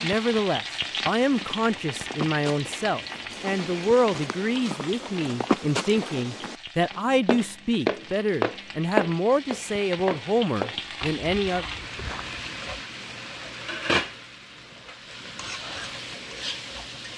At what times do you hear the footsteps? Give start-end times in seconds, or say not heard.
0.7-12.3.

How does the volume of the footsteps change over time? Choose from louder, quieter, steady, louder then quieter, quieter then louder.
louder then quieter.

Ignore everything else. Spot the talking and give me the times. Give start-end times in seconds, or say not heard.
0.0-11.7.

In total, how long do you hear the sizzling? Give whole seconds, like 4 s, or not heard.
17 s.